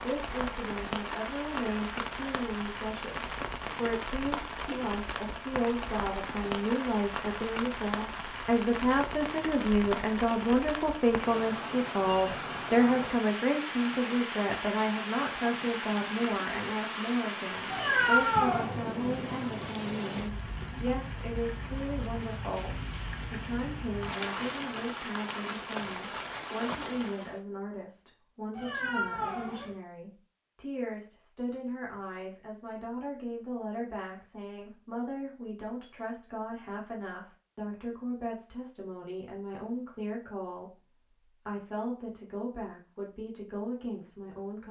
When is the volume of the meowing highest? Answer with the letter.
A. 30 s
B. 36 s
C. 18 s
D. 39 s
C.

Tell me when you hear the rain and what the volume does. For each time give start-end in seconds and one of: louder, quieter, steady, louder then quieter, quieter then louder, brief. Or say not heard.
0.0-27.4 steady.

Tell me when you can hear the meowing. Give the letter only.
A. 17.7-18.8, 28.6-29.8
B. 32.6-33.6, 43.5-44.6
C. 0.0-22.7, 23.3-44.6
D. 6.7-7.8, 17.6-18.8
A.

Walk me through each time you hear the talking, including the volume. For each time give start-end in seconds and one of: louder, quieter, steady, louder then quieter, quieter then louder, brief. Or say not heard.
0.0-22.7 louder then quieter
23.3-44.6 steady.